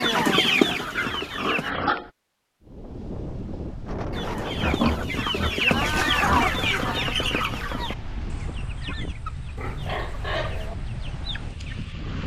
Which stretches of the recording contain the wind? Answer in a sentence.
You can hear the wind from 2.6 to 12.2 s.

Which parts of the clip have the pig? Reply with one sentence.
The pig can be heard from 0.0 to 2.1 s, from 4.5 to 6.5 s and from 9.6 to 10.8 s.